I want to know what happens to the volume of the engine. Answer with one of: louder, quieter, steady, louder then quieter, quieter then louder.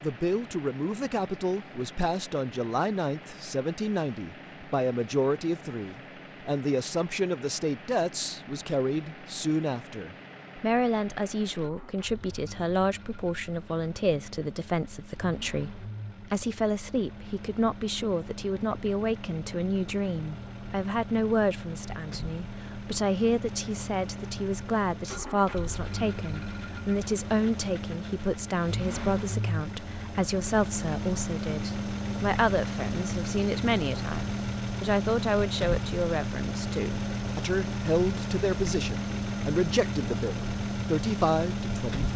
louder.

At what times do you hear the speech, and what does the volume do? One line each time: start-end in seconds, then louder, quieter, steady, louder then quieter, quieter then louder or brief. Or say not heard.
0.0-42.1 steady.